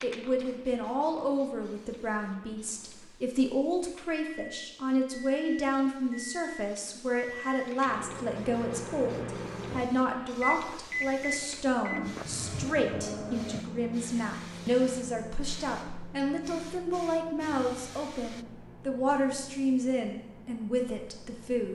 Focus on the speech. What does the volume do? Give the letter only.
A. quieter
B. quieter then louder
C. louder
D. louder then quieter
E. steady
E.